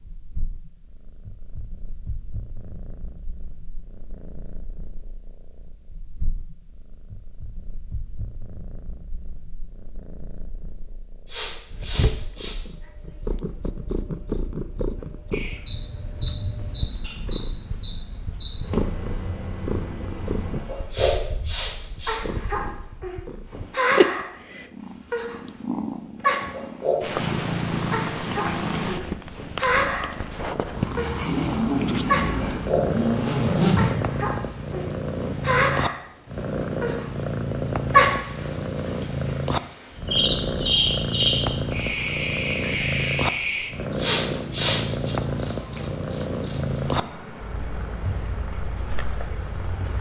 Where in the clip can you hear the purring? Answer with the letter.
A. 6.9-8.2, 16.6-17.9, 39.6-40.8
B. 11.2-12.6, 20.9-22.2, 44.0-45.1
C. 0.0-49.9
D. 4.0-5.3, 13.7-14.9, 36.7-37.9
C.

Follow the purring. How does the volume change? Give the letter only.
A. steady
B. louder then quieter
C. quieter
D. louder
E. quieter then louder
D.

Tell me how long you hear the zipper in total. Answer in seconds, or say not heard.
3 s.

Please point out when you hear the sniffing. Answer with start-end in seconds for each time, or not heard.
11.2-12.6, 20.9-22.2, 44.0-45.1.